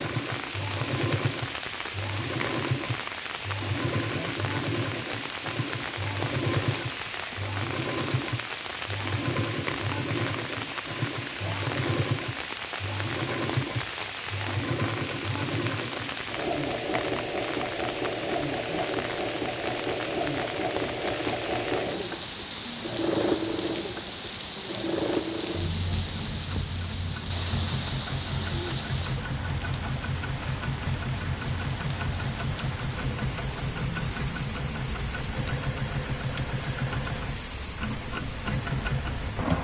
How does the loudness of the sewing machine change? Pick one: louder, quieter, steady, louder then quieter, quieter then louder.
steady.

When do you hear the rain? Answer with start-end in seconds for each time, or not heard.
0.0-39.5.